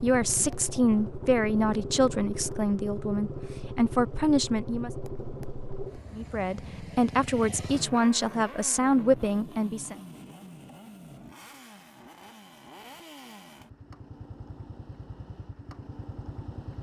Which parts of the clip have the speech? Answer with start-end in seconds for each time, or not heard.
0.0-4.9, 6.1-10.0.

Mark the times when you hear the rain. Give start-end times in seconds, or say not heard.
not heard.